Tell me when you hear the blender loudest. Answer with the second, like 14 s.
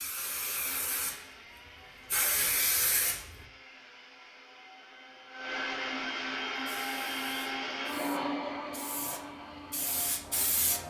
8 s.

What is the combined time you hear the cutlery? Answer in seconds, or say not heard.
not heard.